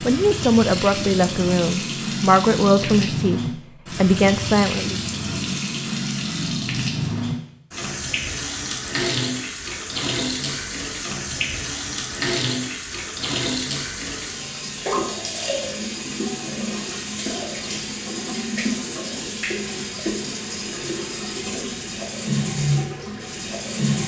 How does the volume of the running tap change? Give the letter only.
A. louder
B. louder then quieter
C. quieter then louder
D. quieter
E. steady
E.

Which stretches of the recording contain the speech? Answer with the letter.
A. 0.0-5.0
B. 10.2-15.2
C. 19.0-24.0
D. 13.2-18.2
A.